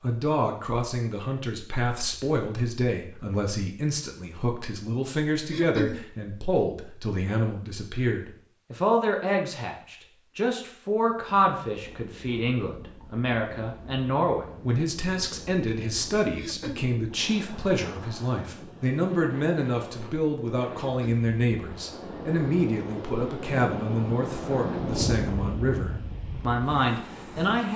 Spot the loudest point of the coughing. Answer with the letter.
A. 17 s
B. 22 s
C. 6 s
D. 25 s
C.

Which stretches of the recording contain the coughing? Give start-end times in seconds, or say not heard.
5.5-6.0, 16.4-16.9, 20.8-21.2.